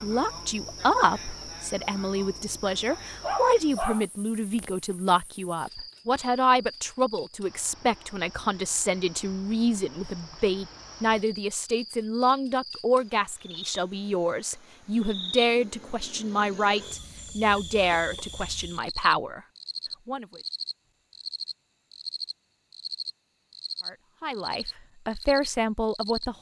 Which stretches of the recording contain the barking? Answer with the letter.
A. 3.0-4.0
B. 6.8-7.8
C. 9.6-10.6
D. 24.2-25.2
A.